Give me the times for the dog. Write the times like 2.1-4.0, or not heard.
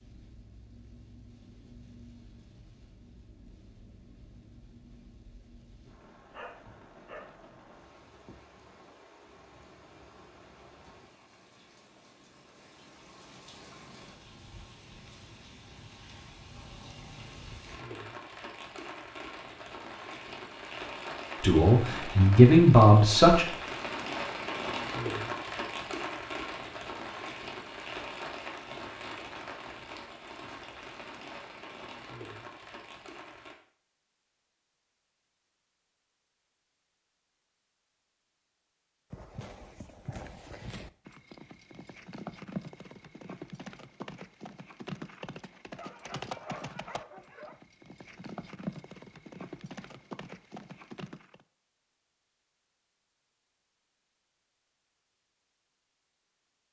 6.3-7.5, 45.8-47.6.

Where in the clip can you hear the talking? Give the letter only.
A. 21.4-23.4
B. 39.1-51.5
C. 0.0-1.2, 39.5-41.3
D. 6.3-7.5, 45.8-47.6
A.